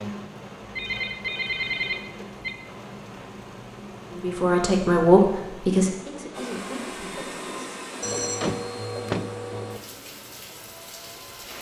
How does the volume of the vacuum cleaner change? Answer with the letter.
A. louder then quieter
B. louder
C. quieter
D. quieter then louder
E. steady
C.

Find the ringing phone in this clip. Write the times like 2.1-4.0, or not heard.
0.6-2.5, 8.0-9.8.